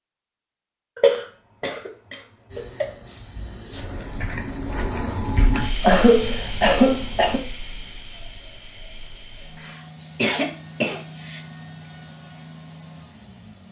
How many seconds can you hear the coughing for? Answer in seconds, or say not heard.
5 s.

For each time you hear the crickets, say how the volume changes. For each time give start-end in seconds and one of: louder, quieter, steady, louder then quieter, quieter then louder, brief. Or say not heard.
2.5-13.6 louder then quieter.